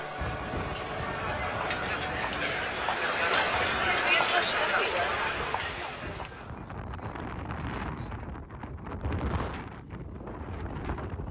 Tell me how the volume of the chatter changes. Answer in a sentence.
The volume of the chatter goes up, then down.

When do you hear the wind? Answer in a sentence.
The wind can be heard from 0.0 to 11.2 s.